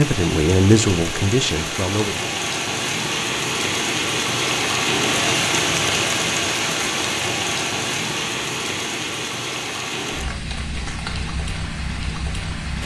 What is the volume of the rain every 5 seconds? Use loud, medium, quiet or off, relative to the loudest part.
loud, loud, medium.